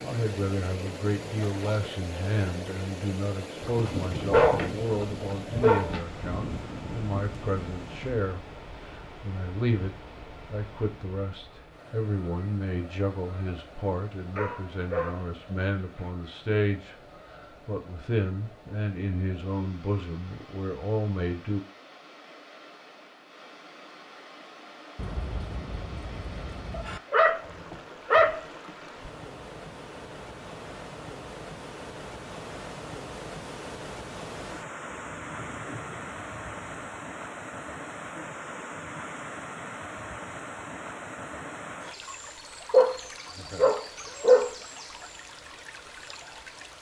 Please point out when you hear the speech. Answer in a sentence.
The speech can be heard from 0.0 to 21.6 s.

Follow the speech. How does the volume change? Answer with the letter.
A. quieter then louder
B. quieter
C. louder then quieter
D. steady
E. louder
D.